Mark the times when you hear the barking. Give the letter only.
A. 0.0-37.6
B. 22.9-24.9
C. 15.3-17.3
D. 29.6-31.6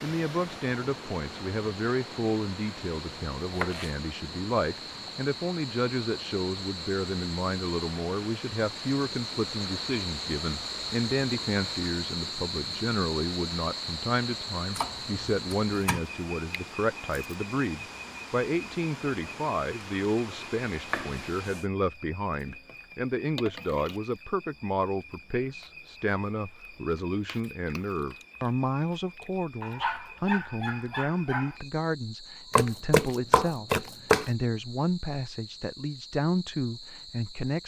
D.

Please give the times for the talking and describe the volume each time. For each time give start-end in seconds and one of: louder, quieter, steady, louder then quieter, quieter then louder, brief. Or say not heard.
0.0-37.6 steady.